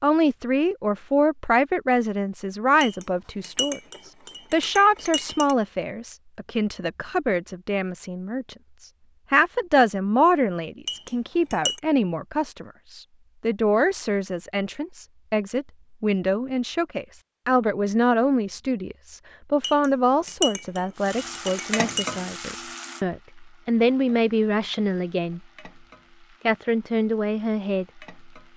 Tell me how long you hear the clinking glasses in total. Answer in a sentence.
You can hear the clinking glasses for 6 seconds altogether.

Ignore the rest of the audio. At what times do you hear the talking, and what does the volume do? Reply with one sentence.
The talking can be heard from 0.0 to 25.4 s, at a steady volume; and briefly from 26.4 to 28.1 s.